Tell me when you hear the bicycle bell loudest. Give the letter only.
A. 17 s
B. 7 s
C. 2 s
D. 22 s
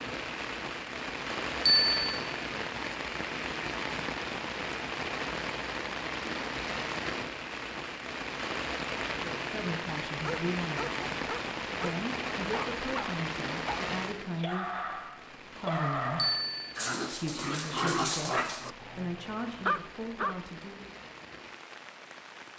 C.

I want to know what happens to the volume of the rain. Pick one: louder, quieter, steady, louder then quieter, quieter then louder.
quieter.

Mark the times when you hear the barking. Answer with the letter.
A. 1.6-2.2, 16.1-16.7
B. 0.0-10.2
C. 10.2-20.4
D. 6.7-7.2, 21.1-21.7
C.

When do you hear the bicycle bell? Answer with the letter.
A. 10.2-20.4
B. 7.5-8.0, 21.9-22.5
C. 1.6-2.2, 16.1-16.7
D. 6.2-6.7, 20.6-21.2
C.